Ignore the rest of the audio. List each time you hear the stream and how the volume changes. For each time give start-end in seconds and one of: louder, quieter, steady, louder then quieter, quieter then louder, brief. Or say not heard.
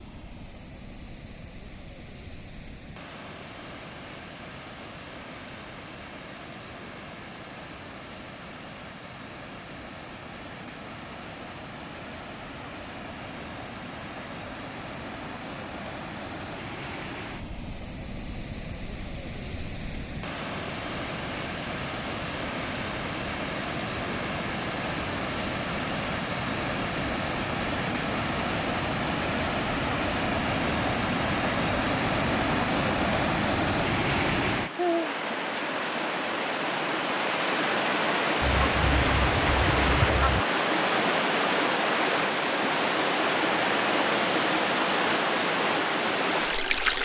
0.0-47.0 louder.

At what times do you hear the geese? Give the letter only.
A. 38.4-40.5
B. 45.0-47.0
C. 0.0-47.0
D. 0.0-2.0
A.